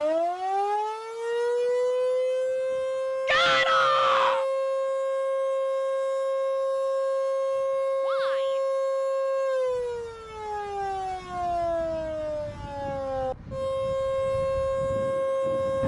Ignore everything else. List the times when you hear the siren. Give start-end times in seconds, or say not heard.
0.0-15.8.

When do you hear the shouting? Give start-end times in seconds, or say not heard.
3.2-4.5, 8.0-8.6.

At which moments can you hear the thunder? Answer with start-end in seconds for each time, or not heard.
not heard.